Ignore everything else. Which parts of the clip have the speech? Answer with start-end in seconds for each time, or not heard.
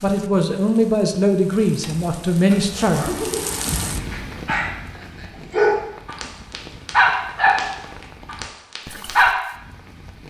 0.0-3.0.